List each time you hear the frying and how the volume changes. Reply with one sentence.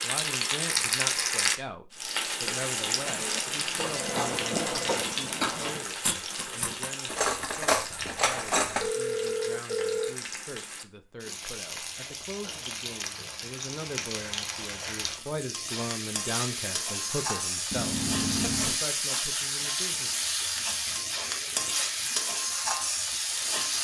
The frying can be heard from 0.0 to 23.7 s, getting quieter then louder.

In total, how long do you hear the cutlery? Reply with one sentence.
The cutlery can be heard for 6 seconds in total.